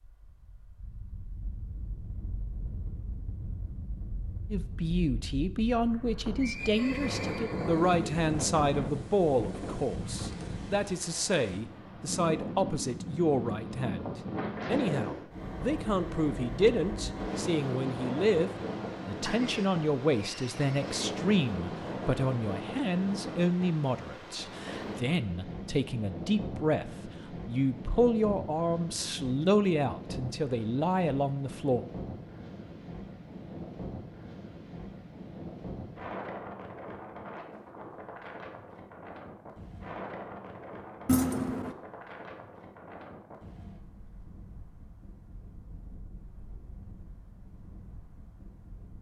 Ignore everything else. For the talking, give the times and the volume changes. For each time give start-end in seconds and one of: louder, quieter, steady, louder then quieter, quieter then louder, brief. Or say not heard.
4.5-31.9 steady.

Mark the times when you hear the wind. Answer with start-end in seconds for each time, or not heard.
0.0-48.9.